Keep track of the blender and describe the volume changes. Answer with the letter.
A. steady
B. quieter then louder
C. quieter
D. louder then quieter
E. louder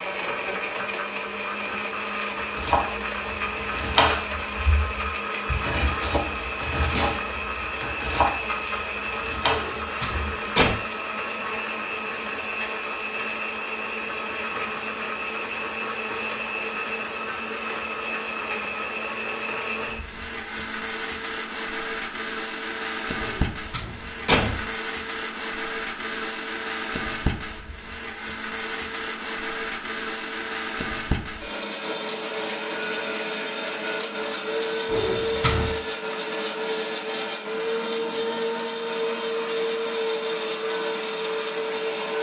A.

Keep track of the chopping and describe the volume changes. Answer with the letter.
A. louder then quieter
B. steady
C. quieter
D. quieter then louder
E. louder
D.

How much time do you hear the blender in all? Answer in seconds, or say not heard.
42 s.